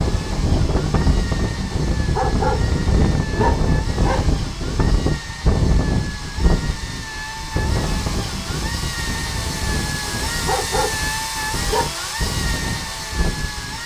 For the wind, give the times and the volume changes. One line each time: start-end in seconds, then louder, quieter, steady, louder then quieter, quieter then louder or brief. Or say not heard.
0.0-13.8 quieter.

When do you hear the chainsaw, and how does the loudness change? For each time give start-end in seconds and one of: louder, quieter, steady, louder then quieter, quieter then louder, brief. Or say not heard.
0.0-13.8 louder.